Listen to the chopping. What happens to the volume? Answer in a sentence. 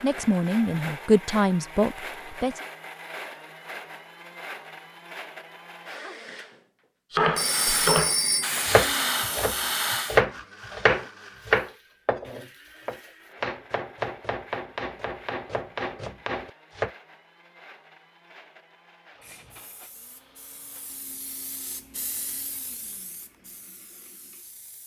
The loudness of the chopping goes down.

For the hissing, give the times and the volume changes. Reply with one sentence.
You can hear the hissing briefly from 7.3 to 10.2 s; and from 19.1 to 24.8 s, getting louder then quieter.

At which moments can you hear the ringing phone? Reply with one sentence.
The ringing phone can be heard from 7.3 to 8.6 s.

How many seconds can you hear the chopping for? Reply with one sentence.
You can hear the chopping for 10 seconds altogether.